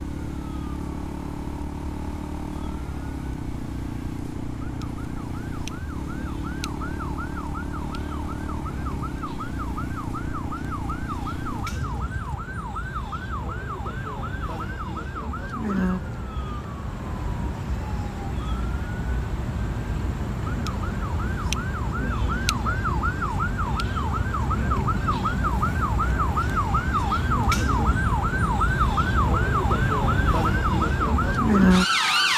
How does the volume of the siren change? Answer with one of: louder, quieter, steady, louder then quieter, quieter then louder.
louder.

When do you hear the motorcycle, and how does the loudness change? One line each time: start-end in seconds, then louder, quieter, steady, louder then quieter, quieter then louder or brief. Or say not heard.
0.0-12.4 steady.